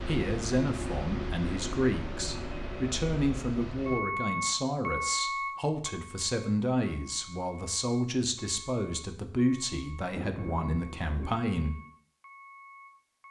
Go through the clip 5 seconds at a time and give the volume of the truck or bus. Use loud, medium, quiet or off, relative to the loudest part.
loud, loud, quiet.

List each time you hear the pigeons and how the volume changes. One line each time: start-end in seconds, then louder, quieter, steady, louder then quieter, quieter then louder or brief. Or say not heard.
not heard.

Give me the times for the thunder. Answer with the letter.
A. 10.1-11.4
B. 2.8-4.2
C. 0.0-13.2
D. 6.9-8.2
A.